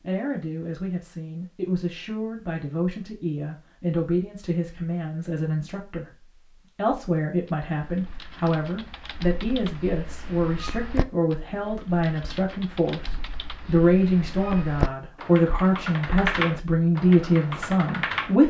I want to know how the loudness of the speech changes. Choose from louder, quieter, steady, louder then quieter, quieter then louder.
louder.